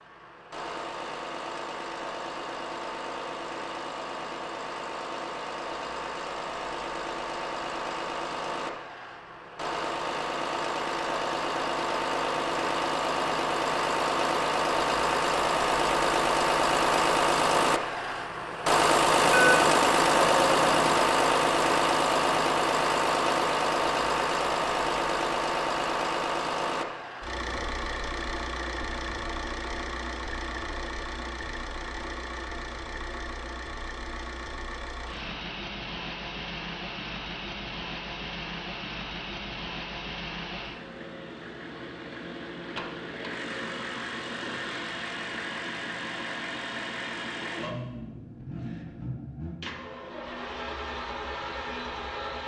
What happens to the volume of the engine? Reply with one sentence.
The loudness of the engine goes up, then down.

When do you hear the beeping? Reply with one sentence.
The beeping can be heard from 19.2 to 21.0 s.